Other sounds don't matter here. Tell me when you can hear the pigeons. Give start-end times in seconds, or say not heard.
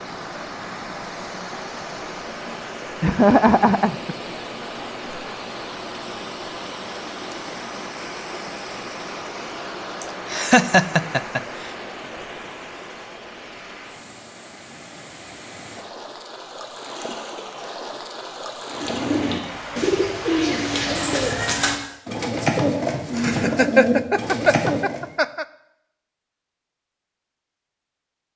18.7-25.1.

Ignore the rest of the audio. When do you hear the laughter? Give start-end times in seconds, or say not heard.
3.0-4.2, 10.0-11.7, 23.1-25.4.